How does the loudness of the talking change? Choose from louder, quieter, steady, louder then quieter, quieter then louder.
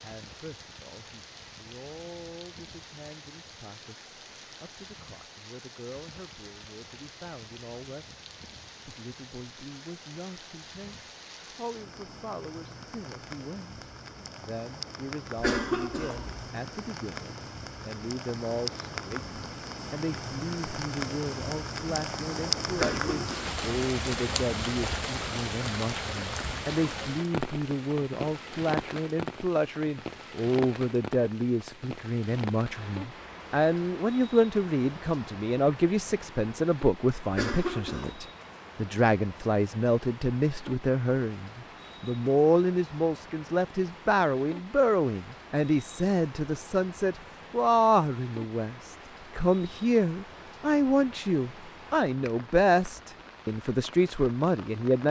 louder.